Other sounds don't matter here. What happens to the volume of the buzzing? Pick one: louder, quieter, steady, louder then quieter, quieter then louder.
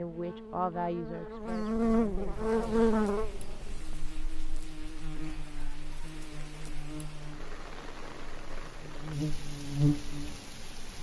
quieter then louder.